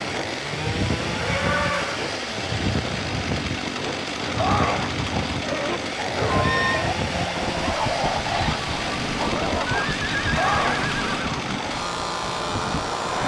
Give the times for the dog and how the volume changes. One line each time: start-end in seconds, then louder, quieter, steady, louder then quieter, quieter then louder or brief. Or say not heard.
4.2-10.9 steady.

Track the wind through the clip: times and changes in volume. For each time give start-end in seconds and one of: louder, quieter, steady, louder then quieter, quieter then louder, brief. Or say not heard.
0.0-13.2 steady.